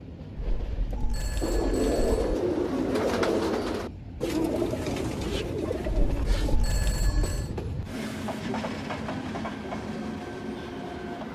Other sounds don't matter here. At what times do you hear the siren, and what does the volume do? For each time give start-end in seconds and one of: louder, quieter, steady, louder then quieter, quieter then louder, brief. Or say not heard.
not heard.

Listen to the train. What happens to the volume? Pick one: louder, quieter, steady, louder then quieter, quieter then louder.
louder.